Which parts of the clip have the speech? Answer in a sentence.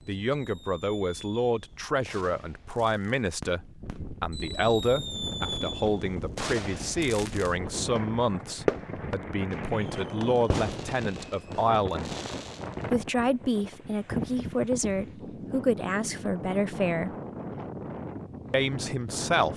You can hear the speech from 0.1 to 12.2 s, from 12.9 to 17.1 s and from 18.5 to 19.5 s.